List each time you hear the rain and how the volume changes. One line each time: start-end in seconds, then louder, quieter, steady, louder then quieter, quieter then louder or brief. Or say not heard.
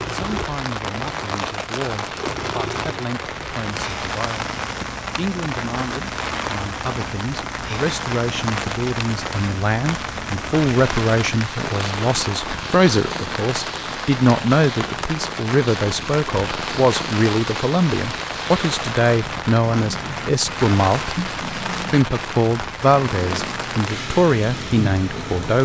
0.0-25.6 steady.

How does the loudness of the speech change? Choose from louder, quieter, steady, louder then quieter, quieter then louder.
louder.